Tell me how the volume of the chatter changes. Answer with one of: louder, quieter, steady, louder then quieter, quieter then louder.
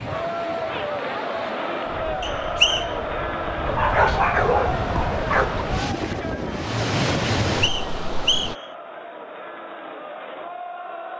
quieter.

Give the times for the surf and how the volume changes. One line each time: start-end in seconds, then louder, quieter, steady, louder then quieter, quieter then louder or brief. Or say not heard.
0.0-8.6 louder.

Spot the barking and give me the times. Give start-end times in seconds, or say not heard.
3.6-5.7.